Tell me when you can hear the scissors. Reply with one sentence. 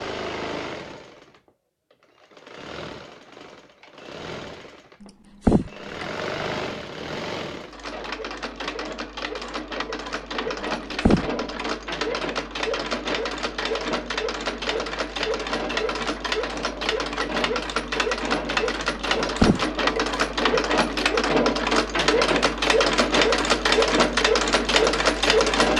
You can hear the scissors from 5.0 to 6.0 s, from 10.6 to 11.7 s and from 18.9 to 20.0 s.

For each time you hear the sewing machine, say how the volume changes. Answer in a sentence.
The sewing machine can be heard from 0.0 to 25.7 s, getting louder.